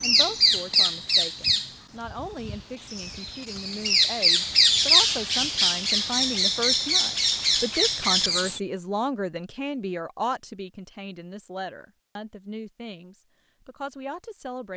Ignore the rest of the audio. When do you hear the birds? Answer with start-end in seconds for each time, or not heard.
0.0-8.6.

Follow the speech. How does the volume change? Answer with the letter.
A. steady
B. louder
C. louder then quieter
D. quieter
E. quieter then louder
C.